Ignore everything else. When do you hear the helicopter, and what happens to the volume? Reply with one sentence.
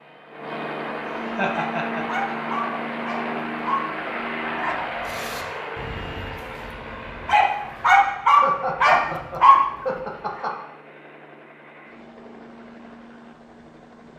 You can hear the helicopter from 0.0 to 14.1 s, getting quieter.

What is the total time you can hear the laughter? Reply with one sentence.
You can hear the laughter for 3 seconds altogether.